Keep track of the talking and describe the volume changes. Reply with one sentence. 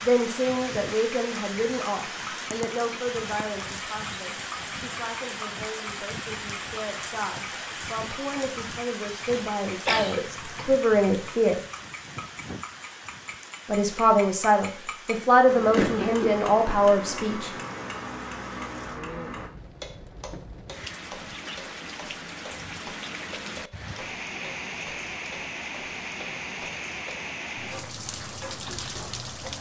The loudness of the talking goes down, then up.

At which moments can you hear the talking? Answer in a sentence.
You can hear the talking from 0.0 to 11.6 s and from 13.7 to 17.5 s.